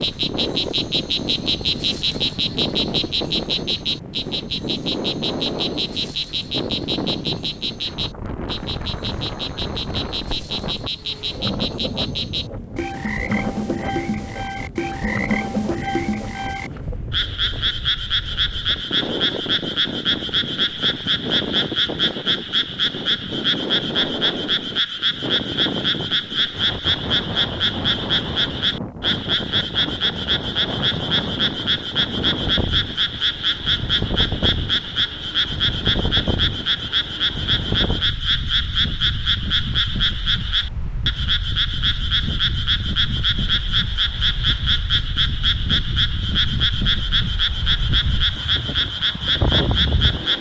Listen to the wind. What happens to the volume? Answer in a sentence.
The volume of the wind stays about the same.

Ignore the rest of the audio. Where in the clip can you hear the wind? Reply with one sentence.
You can hear the wind from 0.0 to 50.3 s.